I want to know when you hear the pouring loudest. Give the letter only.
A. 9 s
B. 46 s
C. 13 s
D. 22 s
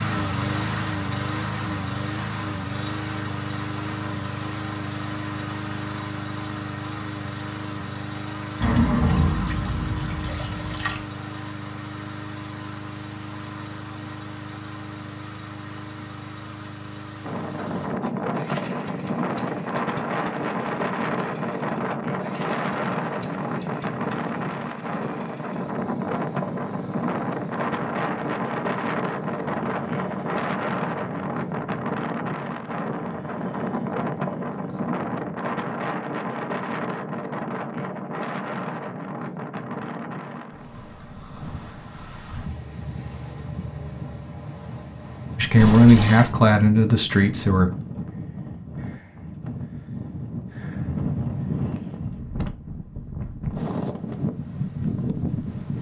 A.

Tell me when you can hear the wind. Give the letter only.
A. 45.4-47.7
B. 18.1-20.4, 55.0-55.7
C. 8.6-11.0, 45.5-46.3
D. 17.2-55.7
D.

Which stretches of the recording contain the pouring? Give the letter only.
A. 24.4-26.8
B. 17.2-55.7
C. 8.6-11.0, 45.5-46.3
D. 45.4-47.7
C.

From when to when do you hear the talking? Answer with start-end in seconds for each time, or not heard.
45.4-47.7.